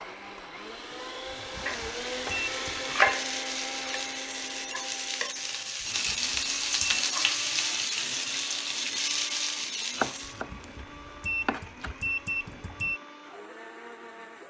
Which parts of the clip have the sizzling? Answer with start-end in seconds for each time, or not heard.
1.6-10.4.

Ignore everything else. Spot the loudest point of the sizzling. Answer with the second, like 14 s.
7 s.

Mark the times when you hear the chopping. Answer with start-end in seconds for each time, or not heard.
1.6-4.0, 9.9-11.9.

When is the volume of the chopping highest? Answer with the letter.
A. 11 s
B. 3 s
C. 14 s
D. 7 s
B.